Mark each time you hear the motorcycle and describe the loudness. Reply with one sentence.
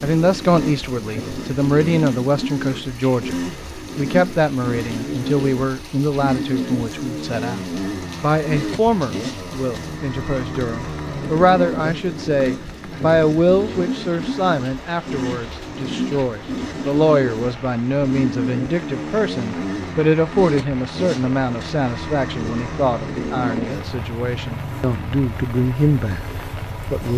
The motorcycle can be heard from 0.0 to 27.1 s, at a steady volume.